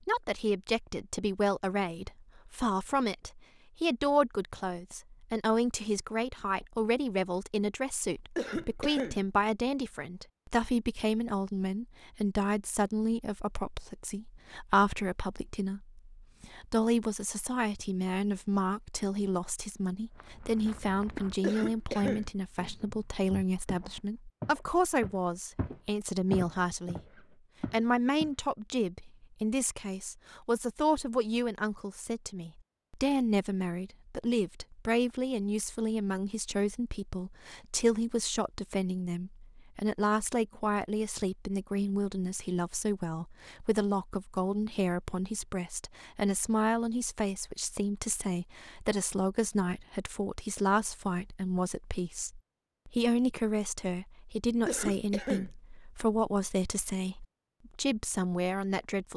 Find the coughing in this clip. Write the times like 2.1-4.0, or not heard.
8.3-9.2, 21.4-22.3, 54.6-55.5.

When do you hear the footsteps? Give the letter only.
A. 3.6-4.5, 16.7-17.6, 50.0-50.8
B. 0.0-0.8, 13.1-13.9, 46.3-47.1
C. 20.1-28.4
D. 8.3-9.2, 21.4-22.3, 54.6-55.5
C.